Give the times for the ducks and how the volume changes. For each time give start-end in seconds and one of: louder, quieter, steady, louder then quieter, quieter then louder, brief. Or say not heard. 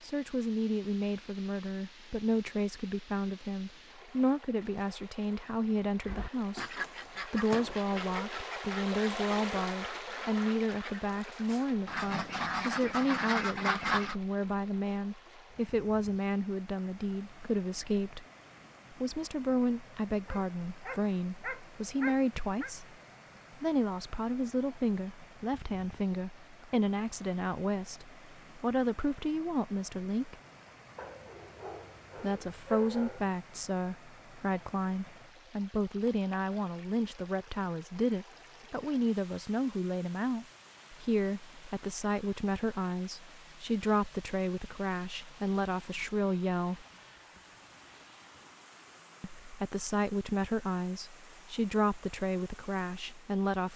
6.0-14.2 quieter then louder.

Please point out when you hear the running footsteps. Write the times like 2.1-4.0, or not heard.
not heard.